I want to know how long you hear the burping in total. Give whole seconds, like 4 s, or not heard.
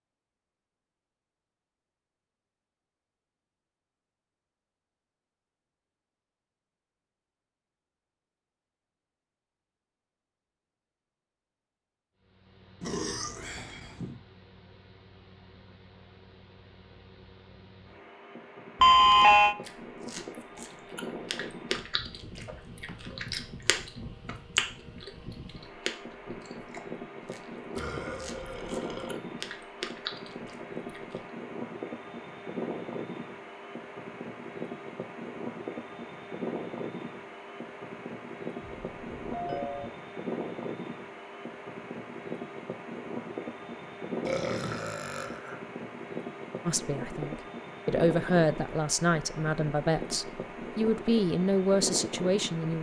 4 s.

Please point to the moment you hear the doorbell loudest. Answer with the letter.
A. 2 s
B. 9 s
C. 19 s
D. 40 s
C.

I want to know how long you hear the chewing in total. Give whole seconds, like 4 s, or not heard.
12 s.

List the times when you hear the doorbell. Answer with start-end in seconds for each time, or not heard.
18.8-19.6, 38.6-39.9.